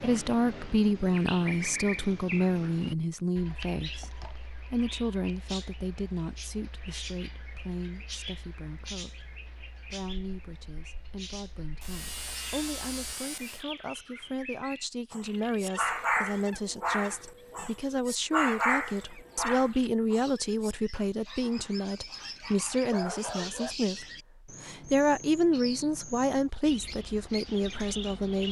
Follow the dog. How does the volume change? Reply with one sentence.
The volume of the dog goes down, then up.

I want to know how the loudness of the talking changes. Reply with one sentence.
The loudness of the talking goes down, then up.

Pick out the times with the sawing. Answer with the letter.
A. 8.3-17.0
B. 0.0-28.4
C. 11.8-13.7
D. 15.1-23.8
C.